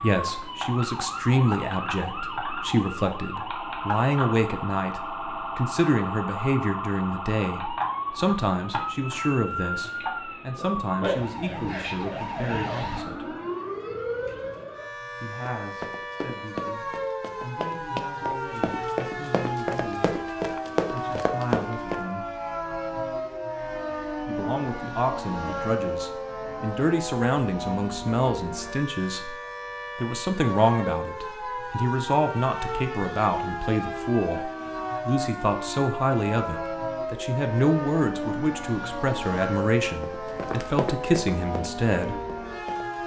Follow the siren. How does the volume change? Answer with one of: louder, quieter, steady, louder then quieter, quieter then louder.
steady.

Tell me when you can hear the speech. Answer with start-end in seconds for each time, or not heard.
0.0-13.3, 15.2-20.2, 20.9-22.2, 24.2-29.4, 29.9-42.2.